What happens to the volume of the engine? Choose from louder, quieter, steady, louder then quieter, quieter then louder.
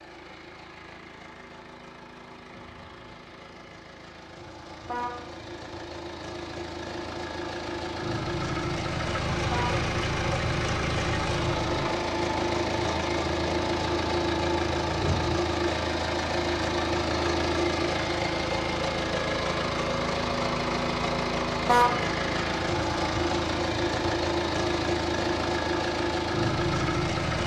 louder.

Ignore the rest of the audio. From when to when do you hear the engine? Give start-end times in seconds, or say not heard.
0.0-27.4.